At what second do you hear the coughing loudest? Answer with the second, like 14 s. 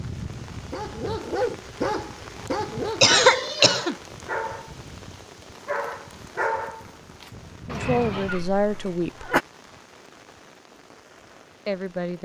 3 s.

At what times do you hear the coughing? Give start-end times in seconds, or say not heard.
3.0-4.0, 8.2-9.4.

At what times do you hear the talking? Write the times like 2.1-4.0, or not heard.
7.7-9.3, 11.7-12.1.